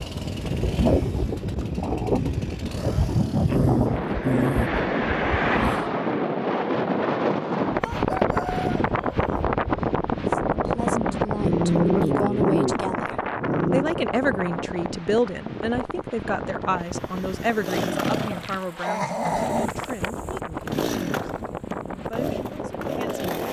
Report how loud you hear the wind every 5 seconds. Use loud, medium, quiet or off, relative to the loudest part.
loud, loud, loud, medium, medium.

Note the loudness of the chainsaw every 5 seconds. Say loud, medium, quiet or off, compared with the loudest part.
medium, off, off, loud, loud.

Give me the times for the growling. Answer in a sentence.
The growling can be heard from 3.5 to 5.9 s, from 11.4 to 13.9 s and from 17.6 to 19.7 s.